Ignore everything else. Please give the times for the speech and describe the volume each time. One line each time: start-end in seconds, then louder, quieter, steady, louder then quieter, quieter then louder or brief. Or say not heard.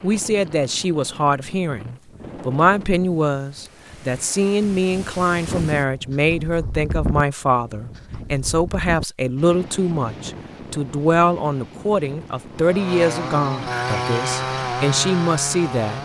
0.0-15.9 steady.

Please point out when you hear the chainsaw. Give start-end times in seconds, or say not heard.
12.5-15.9.